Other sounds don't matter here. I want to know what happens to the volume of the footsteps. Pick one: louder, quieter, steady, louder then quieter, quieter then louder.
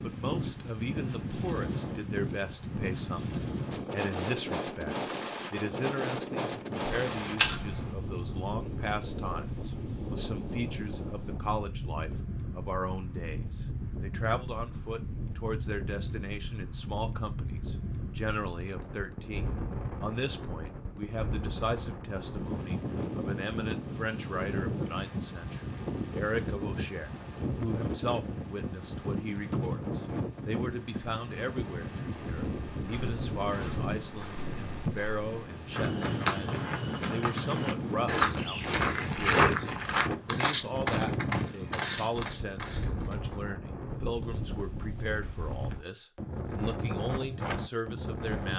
louder then quieter.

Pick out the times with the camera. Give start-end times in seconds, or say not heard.
7.0-7.9.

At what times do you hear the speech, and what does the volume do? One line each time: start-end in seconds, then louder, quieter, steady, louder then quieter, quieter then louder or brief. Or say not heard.
0.0-48.5 steady.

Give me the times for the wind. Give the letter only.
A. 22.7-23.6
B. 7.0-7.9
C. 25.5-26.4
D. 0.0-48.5
D.